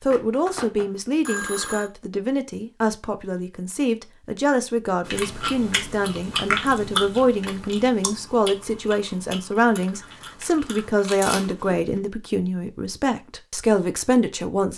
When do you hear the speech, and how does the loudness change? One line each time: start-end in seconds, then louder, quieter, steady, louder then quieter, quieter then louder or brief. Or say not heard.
0.0-14.7 steady.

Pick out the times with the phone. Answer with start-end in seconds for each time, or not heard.
0.1-1.9.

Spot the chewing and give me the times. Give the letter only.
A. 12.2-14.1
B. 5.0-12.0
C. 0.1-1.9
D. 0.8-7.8
B.